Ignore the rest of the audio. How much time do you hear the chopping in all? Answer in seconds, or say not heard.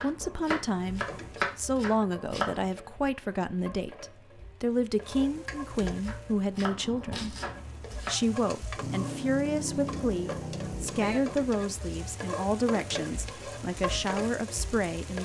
5 s.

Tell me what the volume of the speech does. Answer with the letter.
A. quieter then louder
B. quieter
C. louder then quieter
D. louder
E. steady
E.